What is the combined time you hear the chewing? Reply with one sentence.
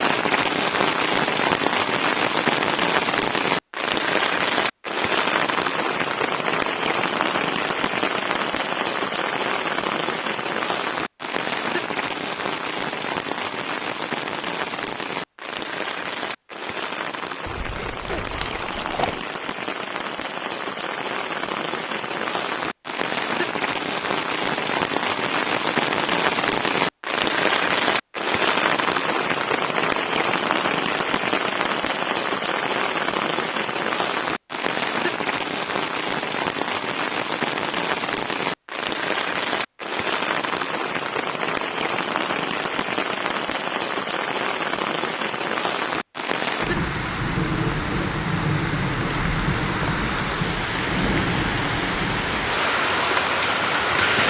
The chewing can be heard for 2 seconds in total.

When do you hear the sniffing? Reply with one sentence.
You can hear the sniffing from 17.7 to 18.2 s.